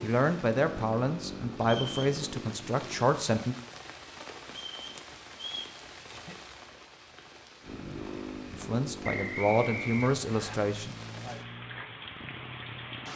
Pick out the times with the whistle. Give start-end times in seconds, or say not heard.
1.6-2.1, 4.7-5.8, 9.0-10.6.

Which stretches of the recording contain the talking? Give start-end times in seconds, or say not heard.
0.0-3.5, 8.5-10.9.